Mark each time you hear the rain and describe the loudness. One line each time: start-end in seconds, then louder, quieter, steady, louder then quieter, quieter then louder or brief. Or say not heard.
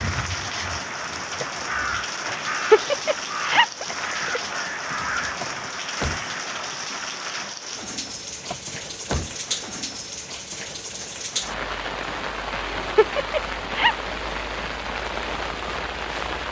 0.0-16.4 steady.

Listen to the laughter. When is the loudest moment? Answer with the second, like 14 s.
3 s.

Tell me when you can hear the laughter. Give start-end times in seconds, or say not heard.
2.2-4.4, 12.8-14.1.